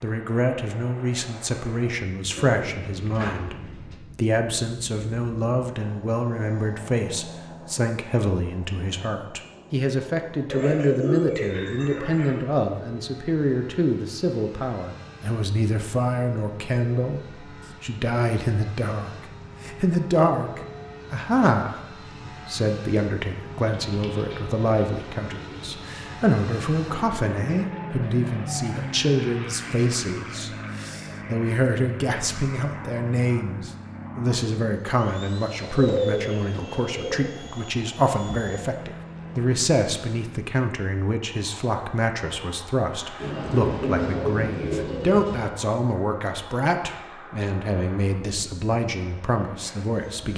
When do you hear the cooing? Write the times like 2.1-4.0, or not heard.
2.3-4.0, 10.5-12.4, 23.6-26.1, 35.6-37.2, 43.2-45.5.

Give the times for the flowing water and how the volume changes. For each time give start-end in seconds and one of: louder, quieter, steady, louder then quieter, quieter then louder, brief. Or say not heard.
not heard.